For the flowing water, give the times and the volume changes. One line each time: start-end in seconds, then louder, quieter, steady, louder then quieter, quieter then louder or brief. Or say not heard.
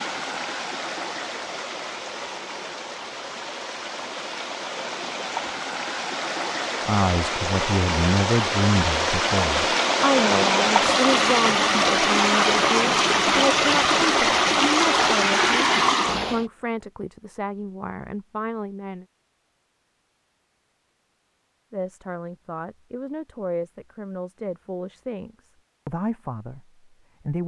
0.0-16.4 louder.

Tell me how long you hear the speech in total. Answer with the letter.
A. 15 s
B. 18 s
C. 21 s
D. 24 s
B.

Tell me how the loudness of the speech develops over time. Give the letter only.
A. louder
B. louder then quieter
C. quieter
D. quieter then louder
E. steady
C.